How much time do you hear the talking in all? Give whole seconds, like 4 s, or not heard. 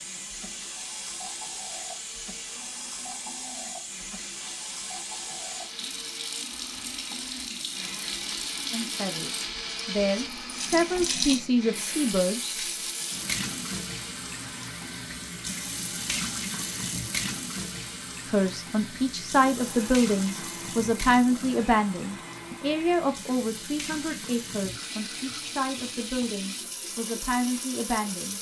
14 s.